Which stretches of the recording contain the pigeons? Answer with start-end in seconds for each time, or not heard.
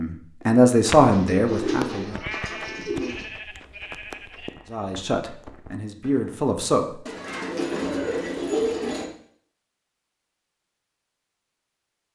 0.9-3.2, 7.0-9.1.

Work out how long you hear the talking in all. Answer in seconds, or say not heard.
4 s.